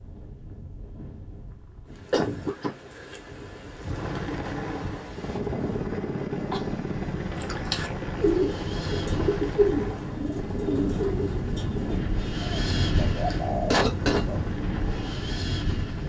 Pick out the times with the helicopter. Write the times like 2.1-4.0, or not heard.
3.8-16.0.